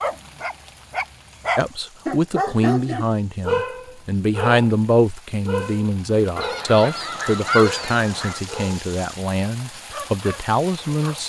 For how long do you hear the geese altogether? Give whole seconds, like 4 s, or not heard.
2 s.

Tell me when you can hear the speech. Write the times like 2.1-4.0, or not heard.
1.6-11.2.